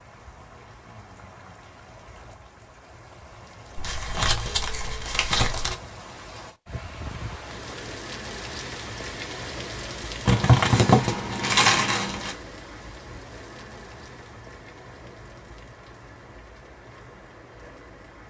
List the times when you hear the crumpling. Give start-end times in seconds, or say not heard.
3.8-5.8, 10.2-12.3.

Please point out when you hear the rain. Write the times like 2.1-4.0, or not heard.
0.0-18.2.